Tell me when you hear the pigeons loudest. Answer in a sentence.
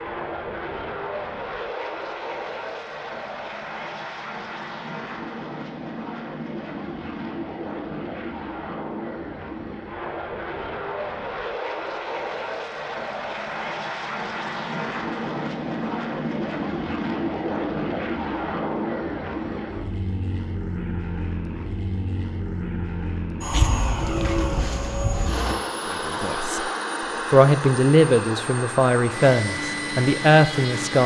The loudest moment of the pigeons is at 24 seconds.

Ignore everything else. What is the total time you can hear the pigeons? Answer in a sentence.
The pigeons can be heard for 2 seconds in total.